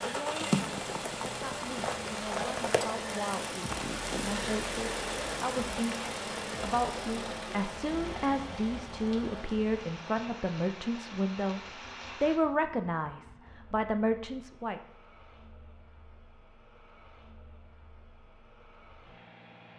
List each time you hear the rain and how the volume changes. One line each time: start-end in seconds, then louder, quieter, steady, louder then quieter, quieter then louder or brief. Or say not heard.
0.0-12.4 quieter.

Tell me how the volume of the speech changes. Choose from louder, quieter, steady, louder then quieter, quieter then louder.
louder.